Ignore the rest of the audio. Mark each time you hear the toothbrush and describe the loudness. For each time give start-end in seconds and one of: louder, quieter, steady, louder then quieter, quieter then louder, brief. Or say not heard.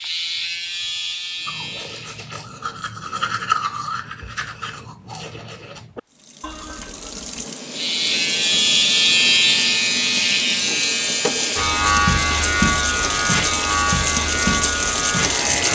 1.4-7.5 louder then quieter.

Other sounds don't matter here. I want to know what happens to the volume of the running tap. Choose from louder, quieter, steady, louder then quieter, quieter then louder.
louder.